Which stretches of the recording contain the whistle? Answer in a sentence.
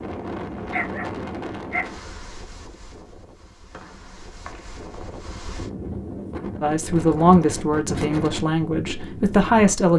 You can hear the whistle from 3.7 to 5.2 s.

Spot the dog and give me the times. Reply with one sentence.
The dog can be heard from 0.7 to 2.0 s.